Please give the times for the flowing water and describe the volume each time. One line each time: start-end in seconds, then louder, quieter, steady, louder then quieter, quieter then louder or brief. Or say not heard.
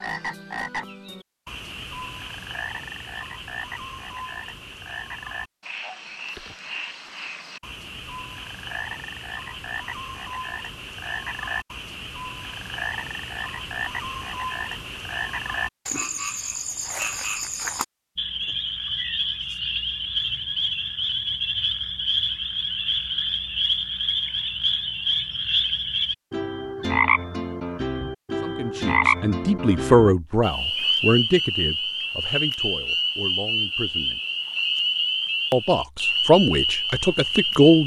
not heard.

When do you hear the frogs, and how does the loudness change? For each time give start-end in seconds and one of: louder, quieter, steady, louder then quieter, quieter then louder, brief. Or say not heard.
0.0-37.8 louder.